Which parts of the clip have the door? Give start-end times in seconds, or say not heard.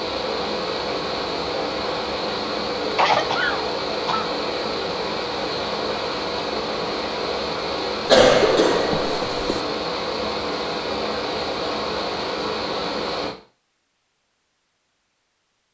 not heard.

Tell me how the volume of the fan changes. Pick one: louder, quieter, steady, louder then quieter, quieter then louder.
steady.